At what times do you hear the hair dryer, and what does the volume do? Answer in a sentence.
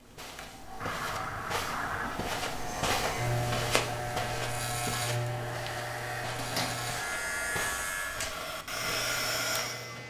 The hair dryer can be heard from 0.0 to 10.0 s, getting louder.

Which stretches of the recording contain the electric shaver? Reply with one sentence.
The electric shaver can be heard from 2.5 to 10.0 s.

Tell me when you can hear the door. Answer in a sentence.
You can hear the door from 6.2 to 6.8 s.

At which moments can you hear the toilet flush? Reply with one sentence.
You can hear the toilet flush from 0.8 to 2.2 s.